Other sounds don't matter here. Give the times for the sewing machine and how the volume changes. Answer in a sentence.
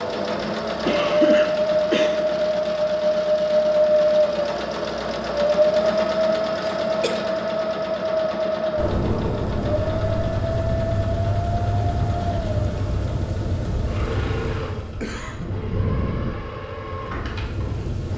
You can hear the sewing machine from 0.0 to 18.1 s, getting quieter.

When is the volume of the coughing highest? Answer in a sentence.
The volume of the coughing peaks at 1 second.